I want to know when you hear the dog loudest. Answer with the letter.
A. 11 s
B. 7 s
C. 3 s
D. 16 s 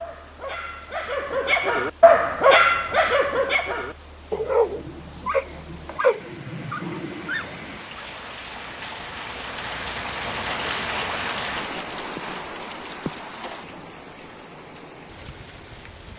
C.